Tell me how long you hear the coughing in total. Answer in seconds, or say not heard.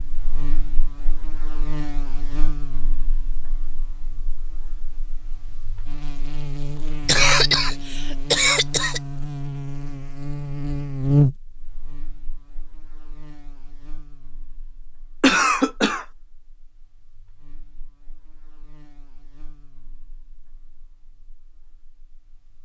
3 s.